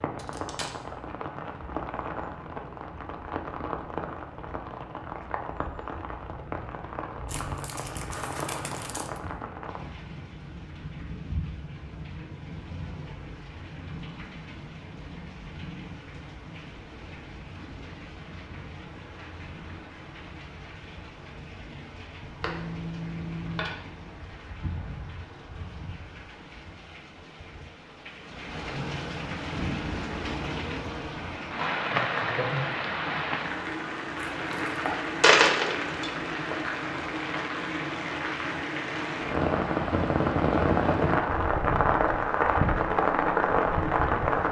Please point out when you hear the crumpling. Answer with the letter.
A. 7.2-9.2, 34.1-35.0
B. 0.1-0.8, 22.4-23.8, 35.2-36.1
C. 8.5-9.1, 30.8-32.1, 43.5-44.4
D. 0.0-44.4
A.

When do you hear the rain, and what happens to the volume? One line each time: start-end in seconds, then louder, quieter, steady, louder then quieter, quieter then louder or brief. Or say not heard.
0.0-44.4 quieter then louder.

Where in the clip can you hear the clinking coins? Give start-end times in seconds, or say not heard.
0.1-0.8, 22.4-23.8, 35.2-36.1.